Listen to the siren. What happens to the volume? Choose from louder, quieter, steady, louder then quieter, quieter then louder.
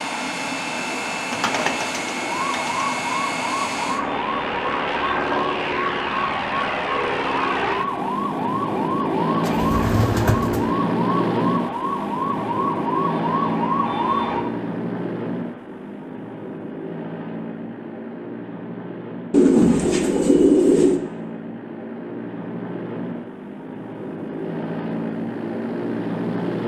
steady.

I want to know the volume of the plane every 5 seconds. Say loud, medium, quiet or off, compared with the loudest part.
loud, loud, loud, medium, medium, loud.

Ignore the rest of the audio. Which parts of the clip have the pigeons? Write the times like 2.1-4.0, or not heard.
0.8-2.8, 9.4-10.7, 19.3-21.0.